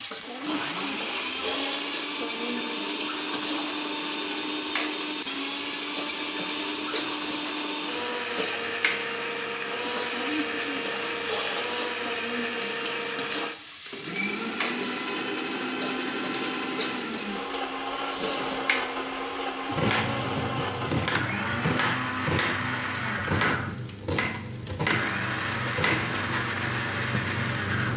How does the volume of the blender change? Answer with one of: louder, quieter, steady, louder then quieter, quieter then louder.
steady.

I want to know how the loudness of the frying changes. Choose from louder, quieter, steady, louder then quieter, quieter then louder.
steady.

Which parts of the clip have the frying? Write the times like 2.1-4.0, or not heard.
0.0-27.9.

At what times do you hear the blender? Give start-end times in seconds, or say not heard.
0.2-27.9.